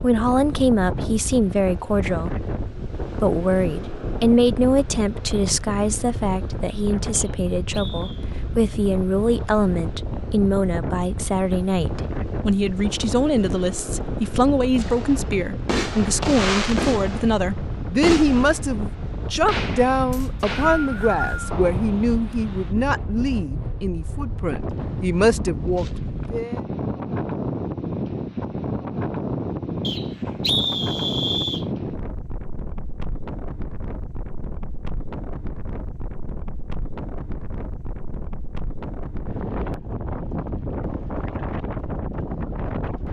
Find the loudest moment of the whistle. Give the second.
31 s.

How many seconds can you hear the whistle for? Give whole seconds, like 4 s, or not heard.
4 s.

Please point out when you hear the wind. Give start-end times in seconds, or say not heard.
0.0-43.0.